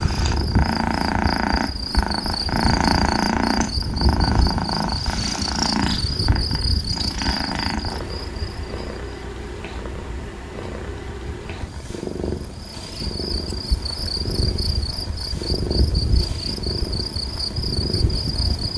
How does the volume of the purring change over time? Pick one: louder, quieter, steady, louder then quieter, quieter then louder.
quieter.